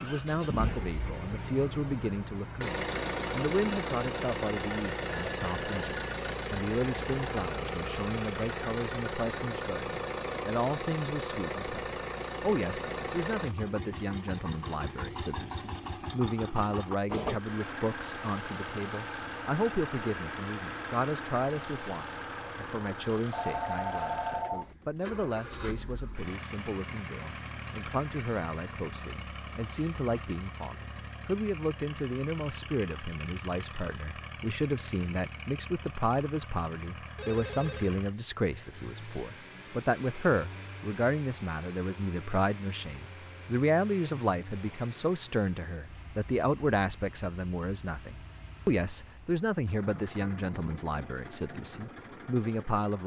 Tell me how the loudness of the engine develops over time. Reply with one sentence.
The volume of the engine goes down.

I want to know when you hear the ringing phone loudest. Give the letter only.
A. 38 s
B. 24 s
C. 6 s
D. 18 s
B.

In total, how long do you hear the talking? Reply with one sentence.
You can hear the talking for 53 seconds altogether.